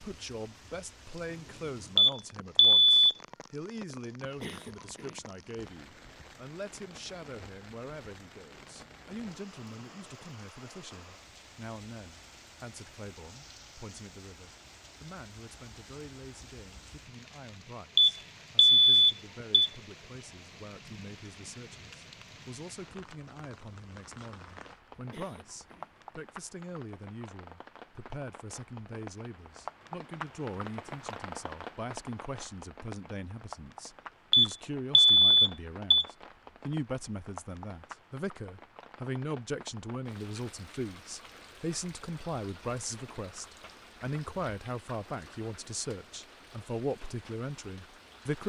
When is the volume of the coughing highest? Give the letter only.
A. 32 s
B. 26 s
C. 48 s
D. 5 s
D.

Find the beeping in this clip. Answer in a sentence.
You can hear the beeping from 1.9 to 3.1 s, from 17.9 to 19.7 s and from 34.3 to 36.0 s.